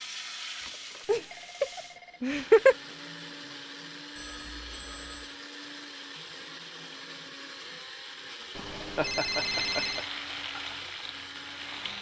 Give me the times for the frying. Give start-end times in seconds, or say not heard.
0.0-2.0, 9.3-11.9.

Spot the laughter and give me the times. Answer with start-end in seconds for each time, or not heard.
1.1-2.8, 8.9-10.0.